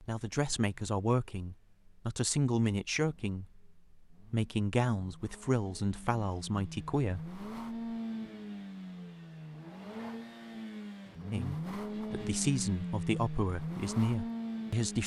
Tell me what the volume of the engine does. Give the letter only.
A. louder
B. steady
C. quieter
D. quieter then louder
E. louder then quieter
A.